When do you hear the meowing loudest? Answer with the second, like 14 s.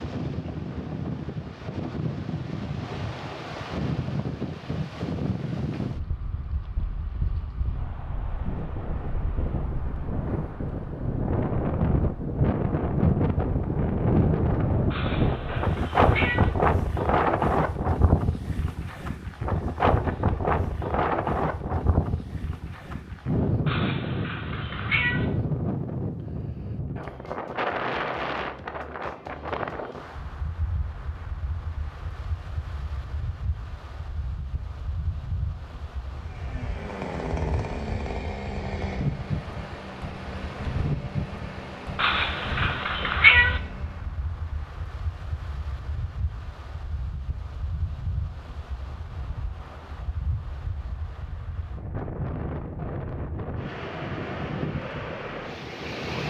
43 s.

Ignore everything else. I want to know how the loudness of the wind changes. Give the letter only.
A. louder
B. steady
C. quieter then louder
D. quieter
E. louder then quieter
E.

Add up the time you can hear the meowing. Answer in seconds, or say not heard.
5 s.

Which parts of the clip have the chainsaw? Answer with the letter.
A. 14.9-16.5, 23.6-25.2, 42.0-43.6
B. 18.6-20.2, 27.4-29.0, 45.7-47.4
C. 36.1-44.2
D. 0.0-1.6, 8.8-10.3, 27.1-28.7
C.